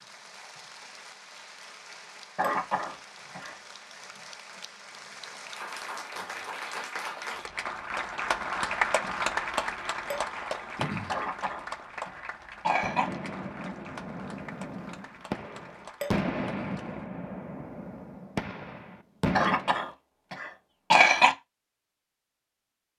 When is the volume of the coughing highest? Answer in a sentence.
The volume of the coughing peaks at 21 seconds.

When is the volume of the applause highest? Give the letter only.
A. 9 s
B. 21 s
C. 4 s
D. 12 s
A.